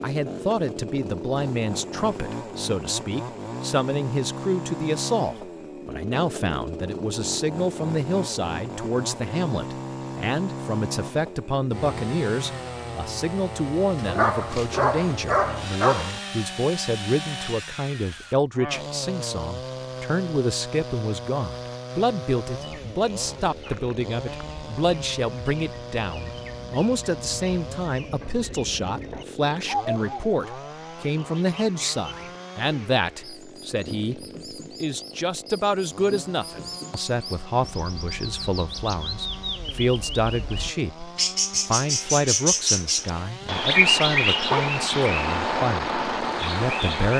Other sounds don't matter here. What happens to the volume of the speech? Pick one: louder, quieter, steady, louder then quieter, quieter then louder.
steady.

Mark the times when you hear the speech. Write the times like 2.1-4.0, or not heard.
0.0-47.1.